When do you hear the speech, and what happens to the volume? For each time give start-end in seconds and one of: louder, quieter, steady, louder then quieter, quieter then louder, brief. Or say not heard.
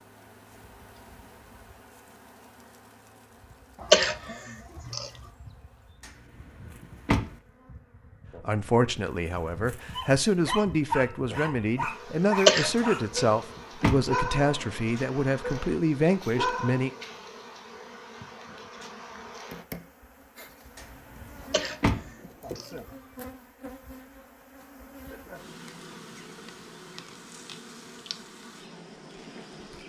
8.4-16.9 steady.